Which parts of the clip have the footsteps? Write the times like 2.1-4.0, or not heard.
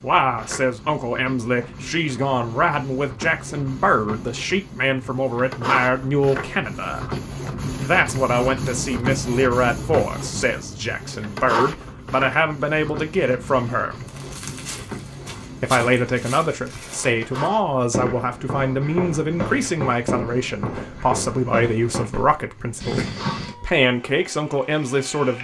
14.1-23.6.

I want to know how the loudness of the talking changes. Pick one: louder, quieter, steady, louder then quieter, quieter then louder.
steady.